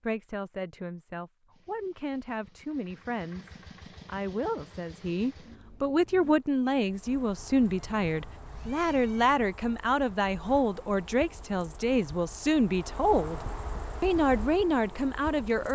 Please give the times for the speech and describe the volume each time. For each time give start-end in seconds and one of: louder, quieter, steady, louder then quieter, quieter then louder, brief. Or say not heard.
0.0-13.4 louder
14.0-15.7 brief.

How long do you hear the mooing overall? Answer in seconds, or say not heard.
not heard.